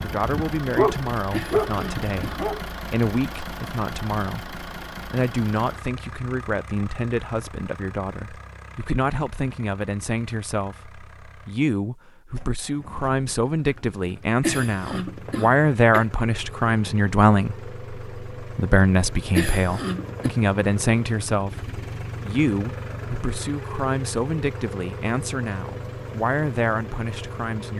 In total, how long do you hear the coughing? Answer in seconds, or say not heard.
4 s.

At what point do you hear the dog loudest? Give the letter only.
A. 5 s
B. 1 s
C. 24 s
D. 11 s
B.